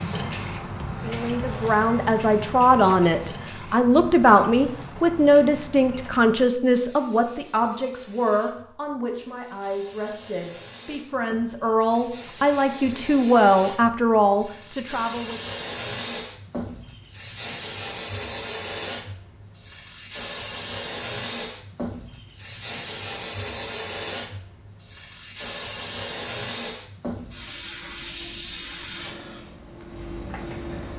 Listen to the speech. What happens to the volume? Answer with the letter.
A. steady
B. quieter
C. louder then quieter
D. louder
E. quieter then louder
E.